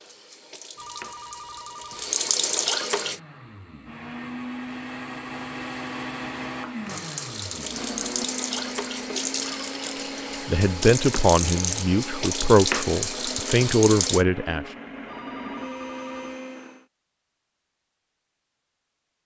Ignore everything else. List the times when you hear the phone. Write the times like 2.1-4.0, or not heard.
0.8-2.1, 15.1-16.4.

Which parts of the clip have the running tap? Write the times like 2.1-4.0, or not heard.
0.0-3.2, 6.8-14.2.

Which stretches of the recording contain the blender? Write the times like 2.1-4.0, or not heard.
2.9-16.9.